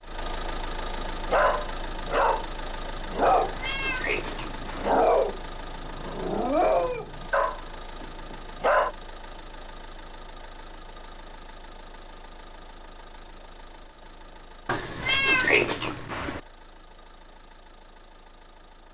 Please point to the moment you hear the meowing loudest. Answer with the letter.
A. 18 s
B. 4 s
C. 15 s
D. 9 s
C.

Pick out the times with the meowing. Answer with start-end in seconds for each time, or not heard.
3.2-5.0, 14.7-16.4.